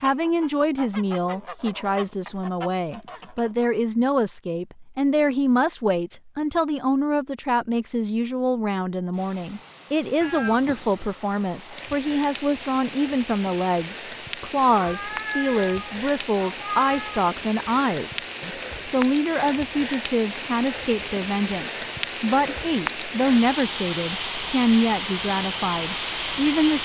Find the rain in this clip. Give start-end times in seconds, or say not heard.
9.1-26.8.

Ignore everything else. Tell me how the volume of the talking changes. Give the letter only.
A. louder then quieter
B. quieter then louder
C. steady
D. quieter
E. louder
C.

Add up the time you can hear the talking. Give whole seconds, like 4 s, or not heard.
27 s.